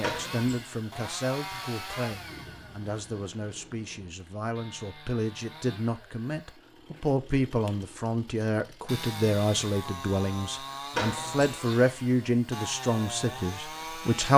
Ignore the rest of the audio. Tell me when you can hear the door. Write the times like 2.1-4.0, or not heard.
0.0-0.5, 10.9-11.6.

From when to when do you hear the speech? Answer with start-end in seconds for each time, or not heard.
0.0-14.3.